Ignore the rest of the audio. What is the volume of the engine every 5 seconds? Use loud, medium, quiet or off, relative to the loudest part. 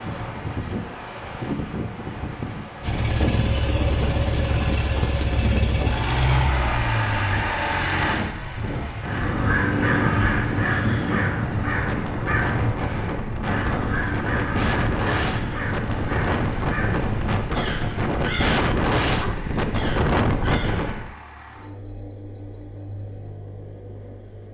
loud, loud, quiet, quiet, quiet.